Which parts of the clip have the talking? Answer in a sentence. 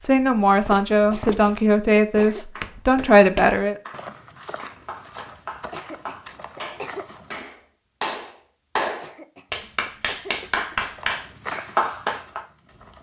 You can hear the talking from 0.0 to 3.8 s.